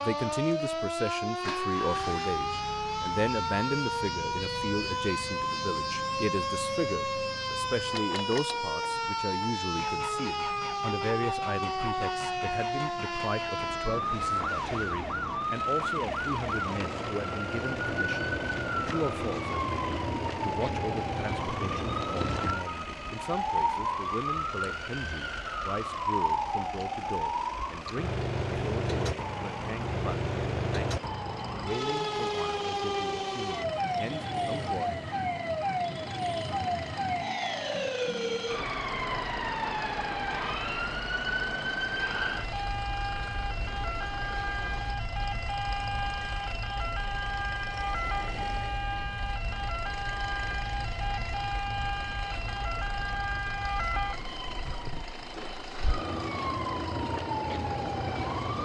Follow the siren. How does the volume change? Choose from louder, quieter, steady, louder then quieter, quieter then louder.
steady.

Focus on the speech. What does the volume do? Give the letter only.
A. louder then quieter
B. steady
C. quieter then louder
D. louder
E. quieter
E.